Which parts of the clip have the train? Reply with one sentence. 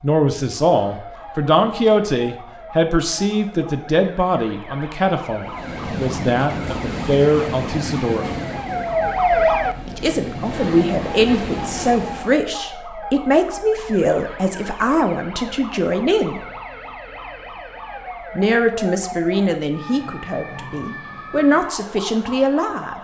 The train can be heard from 5.4 to 12.4 s.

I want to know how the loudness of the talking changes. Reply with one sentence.
The volume of the talking stays about the same.